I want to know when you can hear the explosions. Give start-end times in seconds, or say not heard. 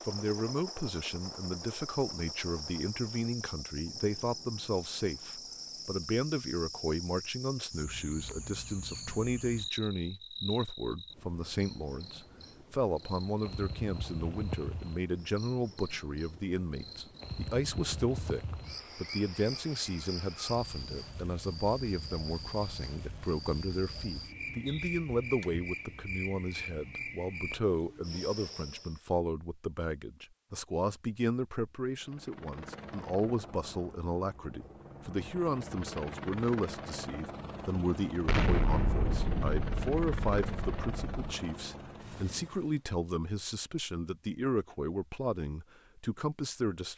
38.2-41.2.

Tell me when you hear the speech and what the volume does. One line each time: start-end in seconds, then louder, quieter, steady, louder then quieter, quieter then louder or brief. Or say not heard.
0.1-46.9 steady.